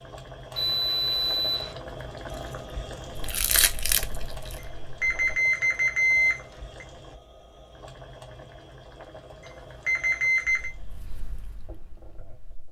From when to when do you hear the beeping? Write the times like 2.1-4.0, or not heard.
0.6-1.8, 5.0-6.8, 9.8-10.7.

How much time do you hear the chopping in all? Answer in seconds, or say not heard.
not heard.